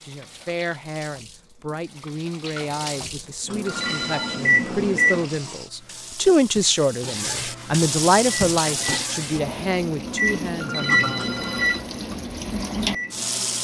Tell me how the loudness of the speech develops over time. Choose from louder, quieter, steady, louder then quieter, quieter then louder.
louder then quieter.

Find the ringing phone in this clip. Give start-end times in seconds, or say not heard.
3.6-4.5, 10.6-11.8.